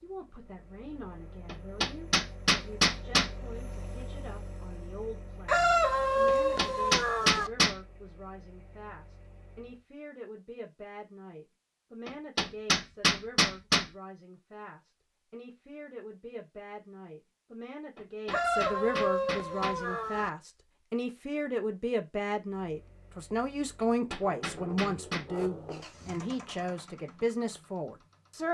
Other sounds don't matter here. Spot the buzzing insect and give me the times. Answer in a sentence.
You can't hear the buzzing insect here.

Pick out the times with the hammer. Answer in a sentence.
The hammer can be heard from 1.4 to 3.3 s, from 6.2 to 7.8 s, from 12.1 to 13.8 s, from 17.9 to 19.8 s and from 23.8 to 25.2 s.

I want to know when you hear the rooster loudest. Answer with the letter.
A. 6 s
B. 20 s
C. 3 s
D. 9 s
A.